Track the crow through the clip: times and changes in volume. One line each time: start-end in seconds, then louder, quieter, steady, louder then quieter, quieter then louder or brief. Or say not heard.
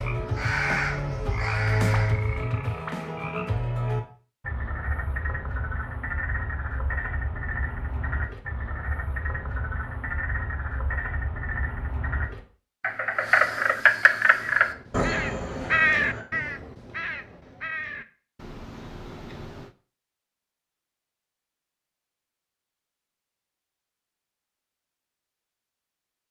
0.0-2.5 brief
14.4-19.7 louder then quieter.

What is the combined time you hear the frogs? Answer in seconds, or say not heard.
16 s.